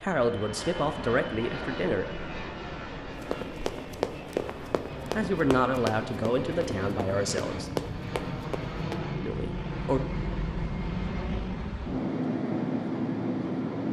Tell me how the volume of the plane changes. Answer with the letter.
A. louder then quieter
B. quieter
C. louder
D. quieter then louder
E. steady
C.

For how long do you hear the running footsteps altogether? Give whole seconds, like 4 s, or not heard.
6 s.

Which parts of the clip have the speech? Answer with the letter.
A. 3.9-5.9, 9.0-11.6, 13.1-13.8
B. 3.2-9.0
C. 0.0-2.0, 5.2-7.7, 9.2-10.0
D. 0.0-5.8
C.